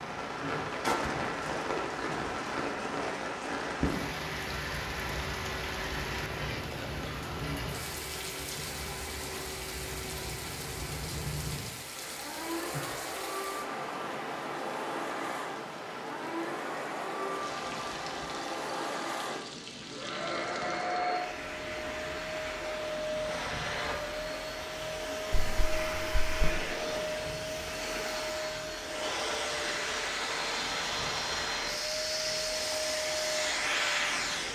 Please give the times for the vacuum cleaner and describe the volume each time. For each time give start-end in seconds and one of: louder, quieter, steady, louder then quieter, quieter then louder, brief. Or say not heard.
0.0-34.5 louder.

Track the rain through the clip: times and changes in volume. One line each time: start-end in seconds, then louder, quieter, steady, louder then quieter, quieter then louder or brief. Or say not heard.
0.0-34.5 quieter.